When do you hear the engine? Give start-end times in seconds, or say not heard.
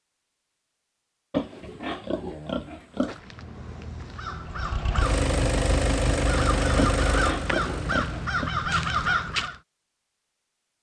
4.5-8.1.